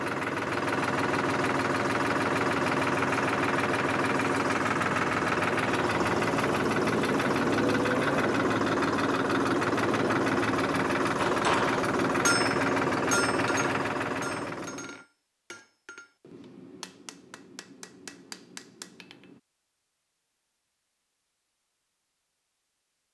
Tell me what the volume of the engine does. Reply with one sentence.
The volume of the engine stays about the same.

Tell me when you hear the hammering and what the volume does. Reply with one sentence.
You can hear the hammering from 11.2 to 19.4 s, getting quieter.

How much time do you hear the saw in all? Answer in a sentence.
You can't hear the saw here.